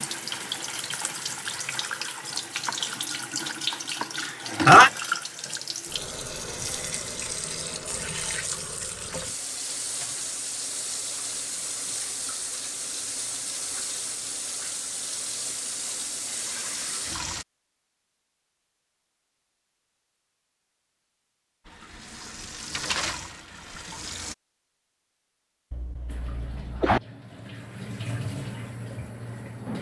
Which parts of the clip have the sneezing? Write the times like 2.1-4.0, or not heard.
4.2-4.9, 25.7-27.0.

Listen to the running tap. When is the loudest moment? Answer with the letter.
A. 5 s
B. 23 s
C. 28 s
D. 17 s
A.